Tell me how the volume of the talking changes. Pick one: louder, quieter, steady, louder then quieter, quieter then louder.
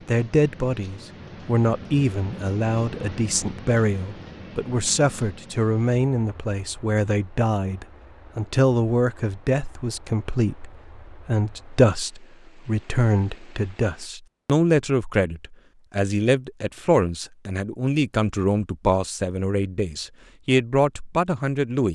steady.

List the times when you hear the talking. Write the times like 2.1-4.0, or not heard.
0.1-21.9.